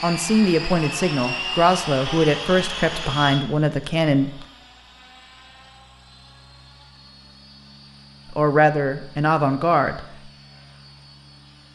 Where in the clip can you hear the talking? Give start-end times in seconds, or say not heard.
0.0-4.5, 8.3-10.3.